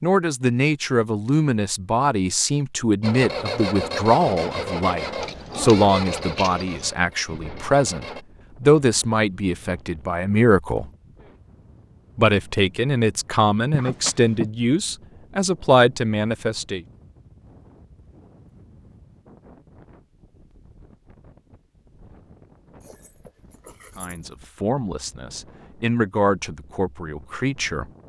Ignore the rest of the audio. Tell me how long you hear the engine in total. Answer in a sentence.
The engine can be heard for 5 seconds in total.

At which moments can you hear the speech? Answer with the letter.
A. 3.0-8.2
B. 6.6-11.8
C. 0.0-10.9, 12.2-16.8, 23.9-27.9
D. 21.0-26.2
C.